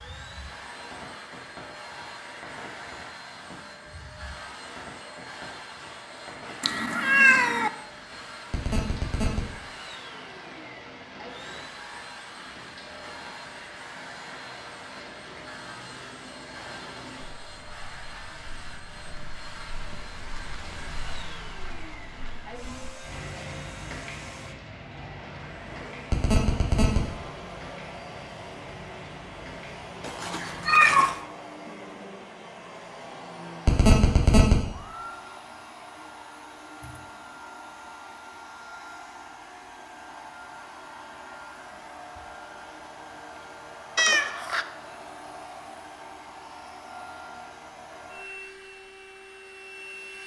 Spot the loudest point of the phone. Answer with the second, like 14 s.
34 s.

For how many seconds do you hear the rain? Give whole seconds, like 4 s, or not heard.
31 s.